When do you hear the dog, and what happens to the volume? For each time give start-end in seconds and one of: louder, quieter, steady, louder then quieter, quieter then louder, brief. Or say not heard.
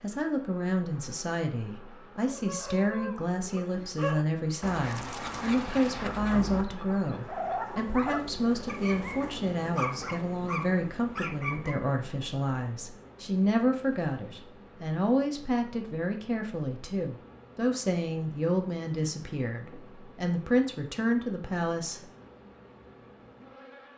2.2-11.8 steady.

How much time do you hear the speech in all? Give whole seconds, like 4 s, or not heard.
22 s.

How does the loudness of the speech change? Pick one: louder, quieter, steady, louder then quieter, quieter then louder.
steady.